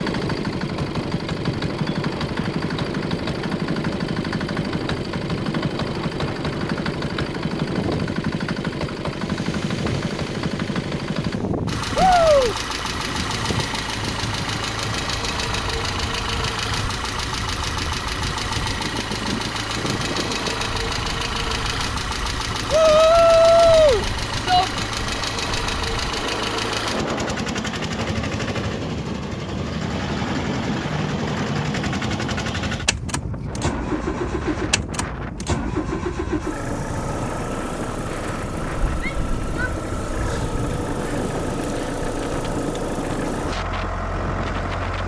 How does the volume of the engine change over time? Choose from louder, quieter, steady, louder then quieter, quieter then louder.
steady.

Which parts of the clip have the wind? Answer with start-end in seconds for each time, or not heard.
0.0-45.0.